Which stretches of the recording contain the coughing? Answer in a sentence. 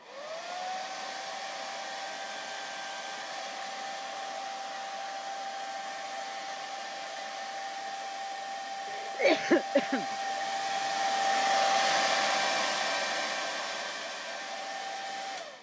The coughing can be heard from 8.9 to 10.1 s.